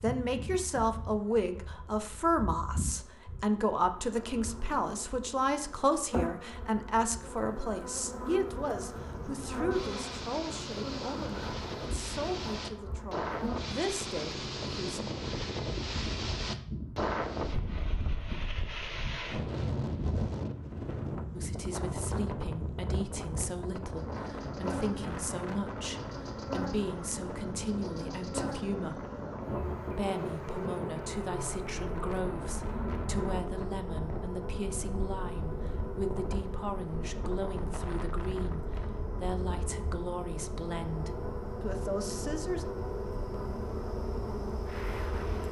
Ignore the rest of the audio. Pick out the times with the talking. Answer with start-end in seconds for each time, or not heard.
0.0-15.0, 21.4-29.1, 29.9-42.6.